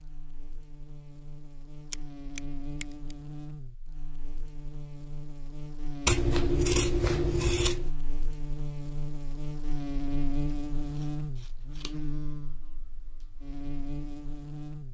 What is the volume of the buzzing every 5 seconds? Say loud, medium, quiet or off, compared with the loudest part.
medium, loud, loud.